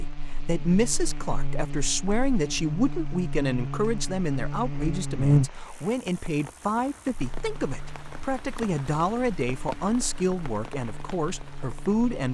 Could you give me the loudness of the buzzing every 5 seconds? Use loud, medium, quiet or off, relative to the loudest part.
medium, loud, quiet.